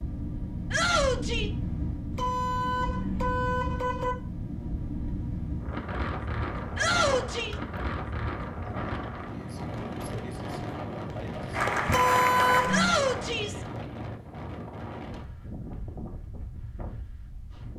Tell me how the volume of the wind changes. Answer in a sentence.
The loudness of the wind goes down.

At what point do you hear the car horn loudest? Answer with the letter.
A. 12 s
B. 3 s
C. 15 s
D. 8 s
A.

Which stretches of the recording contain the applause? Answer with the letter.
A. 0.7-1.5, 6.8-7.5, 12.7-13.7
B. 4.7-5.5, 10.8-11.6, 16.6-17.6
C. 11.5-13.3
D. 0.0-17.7
C.